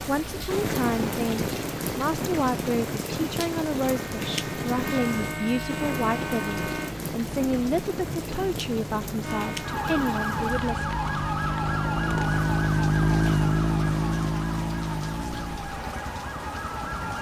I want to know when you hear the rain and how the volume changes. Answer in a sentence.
The rain can be heard from 0.0 to 17.1 s, getting quieter.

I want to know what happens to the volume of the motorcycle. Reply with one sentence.
The loudness of the motorcycle goes up, then down.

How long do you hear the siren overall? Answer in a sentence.
The siren can be heard for 11 seconds in total.